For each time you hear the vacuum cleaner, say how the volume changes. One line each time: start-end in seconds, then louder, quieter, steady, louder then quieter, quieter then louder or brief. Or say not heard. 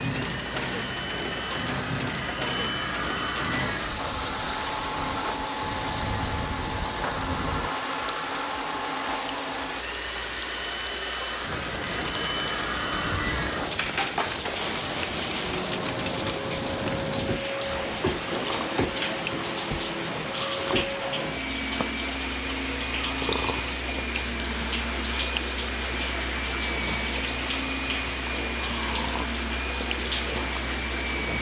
0.0-31.3 steady.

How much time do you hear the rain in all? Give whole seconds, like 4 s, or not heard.
31 s.